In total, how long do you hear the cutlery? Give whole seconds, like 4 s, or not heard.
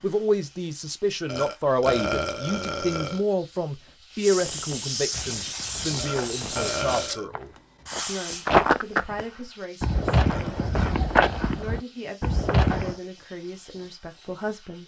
not heard.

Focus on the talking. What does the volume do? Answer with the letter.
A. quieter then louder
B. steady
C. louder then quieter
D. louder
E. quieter
E.